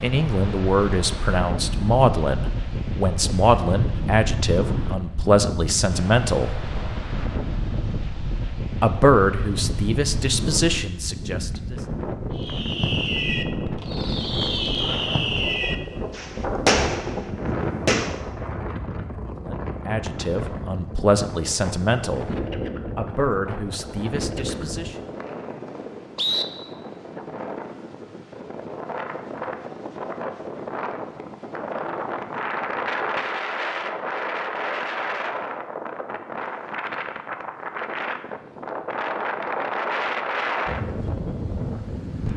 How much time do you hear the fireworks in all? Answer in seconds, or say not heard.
6 s.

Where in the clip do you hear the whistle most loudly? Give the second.
26 s.